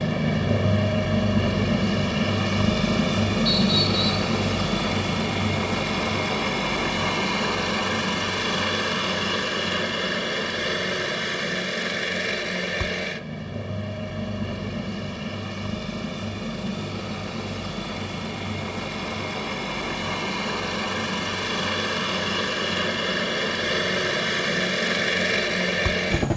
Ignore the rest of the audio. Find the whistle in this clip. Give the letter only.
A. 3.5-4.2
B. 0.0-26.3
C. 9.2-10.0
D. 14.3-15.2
A.